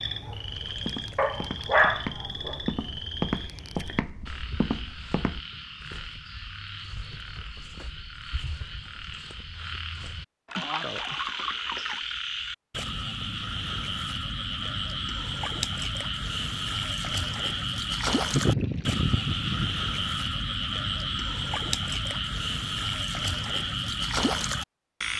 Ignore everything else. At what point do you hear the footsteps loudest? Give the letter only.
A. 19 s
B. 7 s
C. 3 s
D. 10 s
C.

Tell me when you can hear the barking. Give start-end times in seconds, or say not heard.
1.1-2.5.